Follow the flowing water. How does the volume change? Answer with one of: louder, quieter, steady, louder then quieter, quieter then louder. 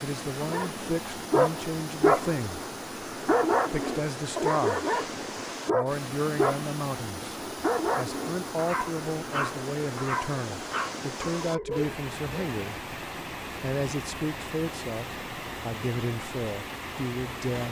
steady.